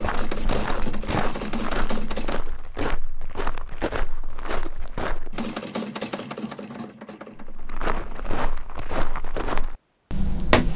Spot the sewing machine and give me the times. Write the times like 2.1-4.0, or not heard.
0.0-2.4, 5.3-8.4.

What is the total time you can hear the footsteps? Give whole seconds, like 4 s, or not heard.
9 s.